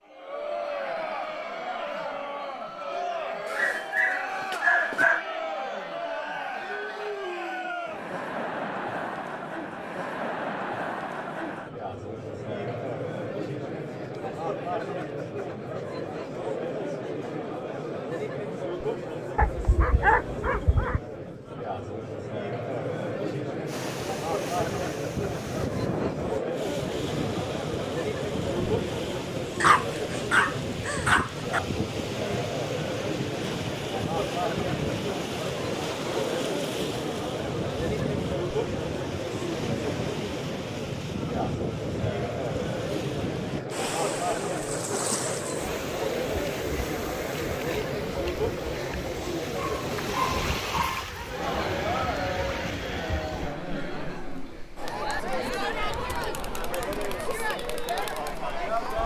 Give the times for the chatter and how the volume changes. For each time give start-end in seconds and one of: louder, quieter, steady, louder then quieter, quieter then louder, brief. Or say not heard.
0.1-59.0 steady.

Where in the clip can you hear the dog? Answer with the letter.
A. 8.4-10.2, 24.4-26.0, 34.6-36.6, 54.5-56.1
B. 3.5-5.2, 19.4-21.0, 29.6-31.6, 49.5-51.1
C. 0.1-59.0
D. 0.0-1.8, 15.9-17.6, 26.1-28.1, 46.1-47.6
B.